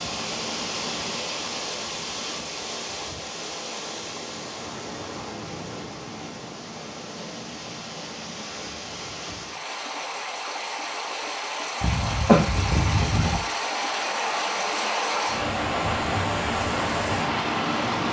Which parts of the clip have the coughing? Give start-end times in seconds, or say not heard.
11.8-13.4.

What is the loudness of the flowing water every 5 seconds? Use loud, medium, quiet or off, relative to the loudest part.
medium, medium, loud, loud.